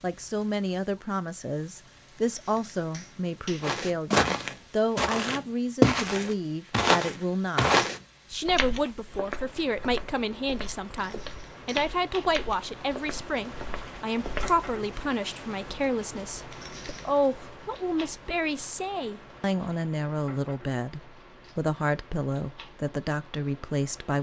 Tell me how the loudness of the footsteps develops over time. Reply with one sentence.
The volume of the footsteps goes down.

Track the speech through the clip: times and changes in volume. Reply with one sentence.
You can hear the speech from 0.0 to 24.1 s, at a steady volume.